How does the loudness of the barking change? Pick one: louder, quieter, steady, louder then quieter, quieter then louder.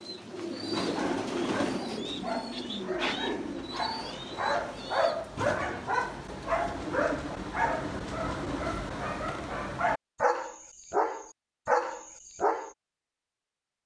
louder.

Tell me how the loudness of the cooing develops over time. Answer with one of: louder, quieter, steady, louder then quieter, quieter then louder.
quieter.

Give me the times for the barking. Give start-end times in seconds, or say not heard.
0.8-12.7.